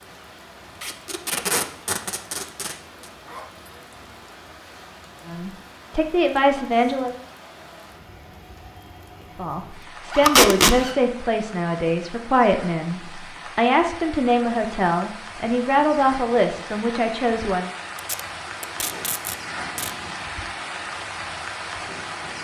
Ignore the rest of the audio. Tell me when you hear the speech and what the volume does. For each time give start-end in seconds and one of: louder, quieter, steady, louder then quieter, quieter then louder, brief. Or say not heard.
5.2-7.2 brief
9.3-17.7 steady.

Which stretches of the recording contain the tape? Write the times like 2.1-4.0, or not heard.
0.8-2.8, 10.2-10.8, 17.9-19.9.